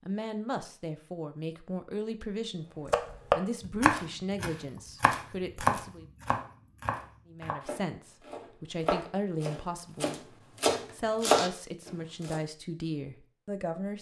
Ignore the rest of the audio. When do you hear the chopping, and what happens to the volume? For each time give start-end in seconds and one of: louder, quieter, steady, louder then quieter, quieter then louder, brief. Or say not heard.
2.9-12.4 quieter then louder.